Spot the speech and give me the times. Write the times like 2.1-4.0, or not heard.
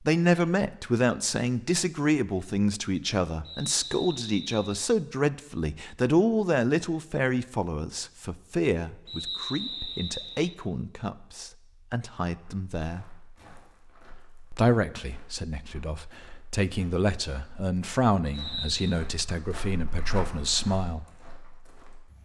0.0-13.1, 14.5-21.1.